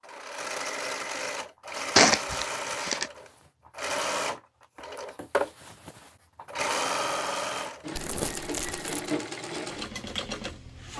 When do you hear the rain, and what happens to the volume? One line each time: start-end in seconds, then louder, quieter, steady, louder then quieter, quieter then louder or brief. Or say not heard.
not heard.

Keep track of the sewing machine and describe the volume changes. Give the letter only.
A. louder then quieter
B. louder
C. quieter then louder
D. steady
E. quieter
D.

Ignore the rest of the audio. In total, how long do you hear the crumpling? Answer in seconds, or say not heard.
2 s.